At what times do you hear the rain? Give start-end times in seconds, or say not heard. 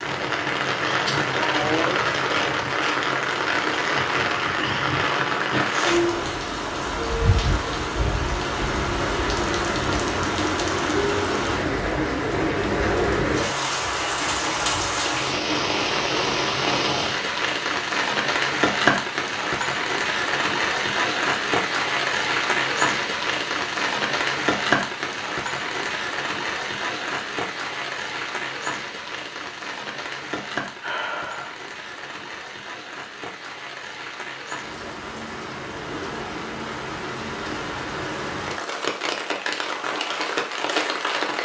0.0-41.4.